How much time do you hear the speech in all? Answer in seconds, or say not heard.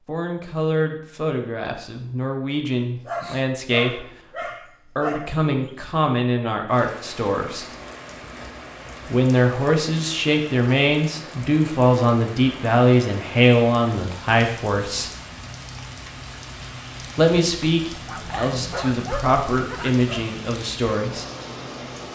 18 s.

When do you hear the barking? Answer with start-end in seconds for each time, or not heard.
3.0-5.8, 18.1-20.4.